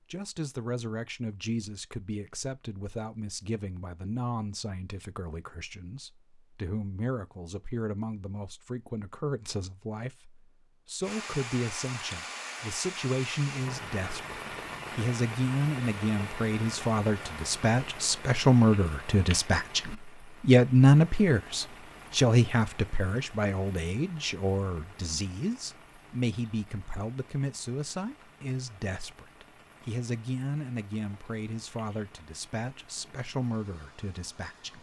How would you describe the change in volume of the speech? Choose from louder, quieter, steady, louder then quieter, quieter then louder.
louder then quieter.